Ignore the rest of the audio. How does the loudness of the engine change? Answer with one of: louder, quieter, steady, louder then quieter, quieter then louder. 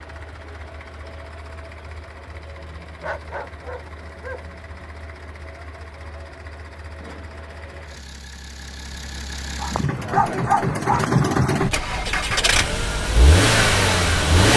louder.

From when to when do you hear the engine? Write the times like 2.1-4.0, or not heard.
0.0-14.5.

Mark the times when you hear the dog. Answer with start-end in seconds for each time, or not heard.
3.0-4.4, 9.6-11.1.